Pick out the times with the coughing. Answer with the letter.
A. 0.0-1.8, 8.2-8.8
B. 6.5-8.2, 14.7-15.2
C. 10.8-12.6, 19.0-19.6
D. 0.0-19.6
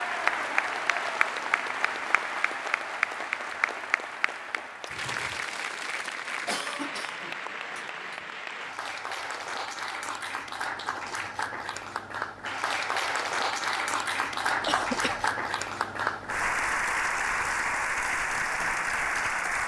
B.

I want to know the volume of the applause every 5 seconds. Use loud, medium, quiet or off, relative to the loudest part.
loud, medium, loud, loud.